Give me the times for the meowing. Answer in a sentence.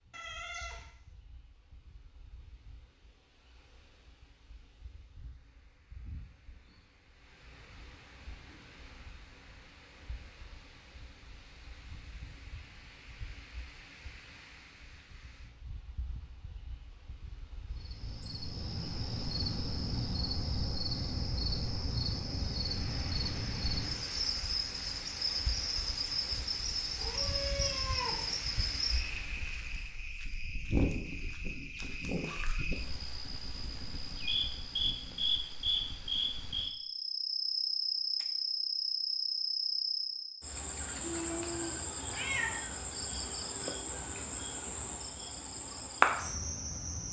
You can hear the meowing from 0.1 to 0.8 s, from 26.9 to 28.6 s and from 41.0 to 42.5 s.